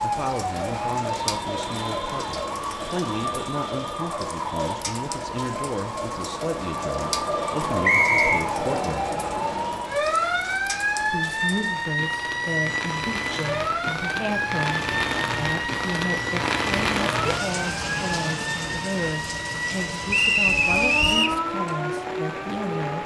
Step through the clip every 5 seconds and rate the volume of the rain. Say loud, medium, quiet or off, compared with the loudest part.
medium, medium, medium, loud, medium.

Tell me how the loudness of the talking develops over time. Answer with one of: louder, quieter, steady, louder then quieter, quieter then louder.
steady.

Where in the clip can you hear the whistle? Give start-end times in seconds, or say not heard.
7.8-8.4, 20.1-21.4.